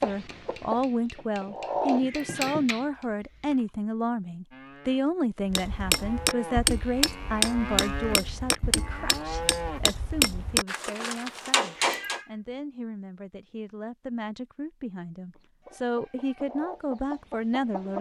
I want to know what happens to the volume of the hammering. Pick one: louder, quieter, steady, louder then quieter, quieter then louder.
louder.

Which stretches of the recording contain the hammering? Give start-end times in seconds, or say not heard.
0.0-3.0, 5.5-12.2.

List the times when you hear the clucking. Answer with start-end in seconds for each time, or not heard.
0.0-2.0, 15.3-17.9.